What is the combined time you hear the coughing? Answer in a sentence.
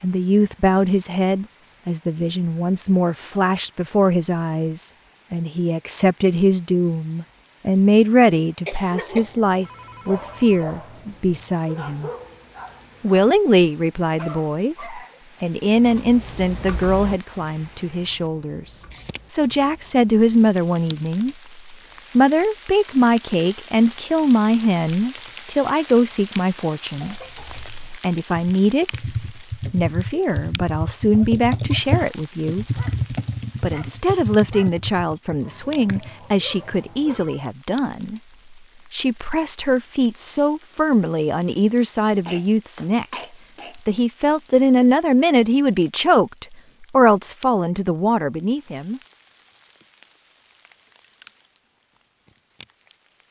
You can hear the coughing for 3 seconds altogether.